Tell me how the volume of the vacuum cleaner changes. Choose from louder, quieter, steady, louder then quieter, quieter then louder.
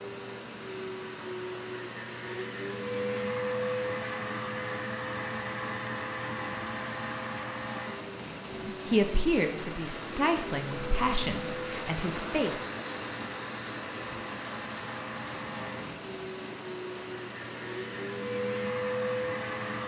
quieter then louder.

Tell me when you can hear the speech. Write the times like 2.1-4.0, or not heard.
8.7-12.7.